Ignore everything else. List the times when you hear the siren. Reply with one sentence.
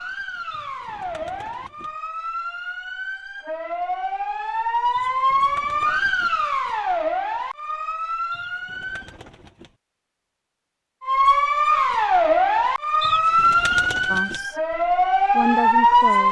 You can hear the siren from 0.0 to 9.2 s and from 11.0 to 16.2 s.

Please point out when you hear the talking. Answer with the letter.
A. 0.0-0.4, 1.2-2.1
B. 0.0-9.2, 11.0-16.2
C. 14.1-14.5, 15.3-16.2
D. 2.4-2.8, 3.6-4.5
C.